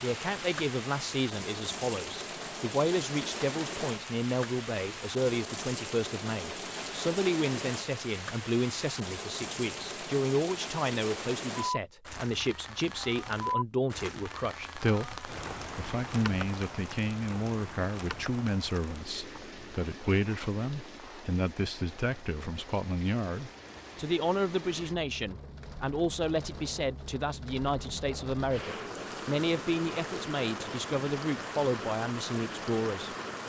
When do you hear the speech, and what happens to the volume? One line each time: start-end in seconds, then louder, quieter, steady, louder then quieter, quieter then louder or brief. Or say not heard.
0.0-33.1 steady.